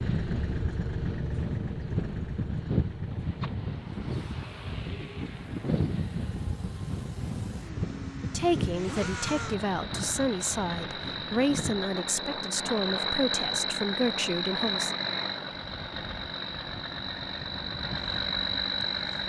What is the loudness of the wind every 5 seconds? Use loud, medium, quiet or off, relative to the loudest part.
loud, loud, medium, quiet.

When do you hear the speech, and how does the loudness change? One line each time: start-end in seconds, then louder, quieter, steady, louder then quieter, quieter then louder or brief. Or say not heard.
8.3-14.9 steady.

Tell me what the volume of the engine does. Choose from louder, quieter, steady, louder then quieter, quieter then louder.
quieter then louder.